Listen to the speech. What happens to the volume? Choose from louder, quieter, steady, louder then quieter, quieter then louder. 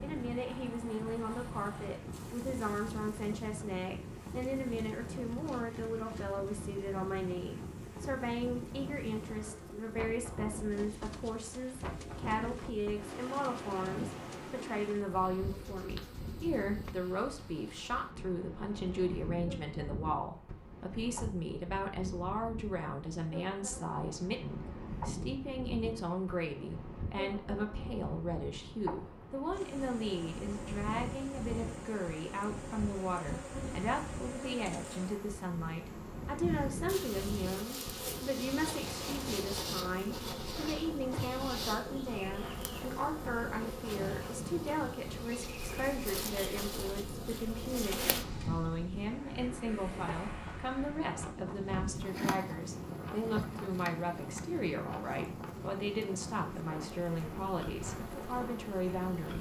steady.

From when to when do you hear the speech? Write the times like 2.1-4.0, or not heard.
0.0-59.3.